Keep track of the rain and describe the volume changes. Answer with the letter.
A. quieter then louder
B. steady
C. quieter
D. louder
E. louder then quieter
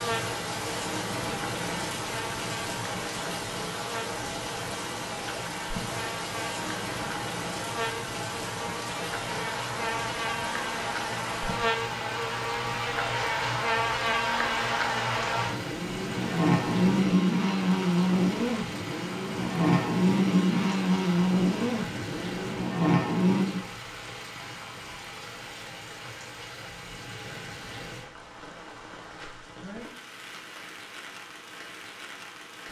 C.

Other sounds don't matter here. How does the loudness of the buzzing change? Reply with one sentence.
The loudness of the buzzing goes up.